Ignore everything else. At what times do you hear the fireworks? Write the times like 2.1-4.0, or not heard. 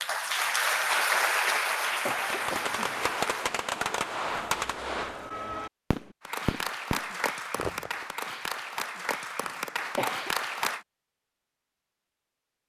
1.9-8.1.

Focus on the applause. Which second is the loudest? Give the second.
1 s.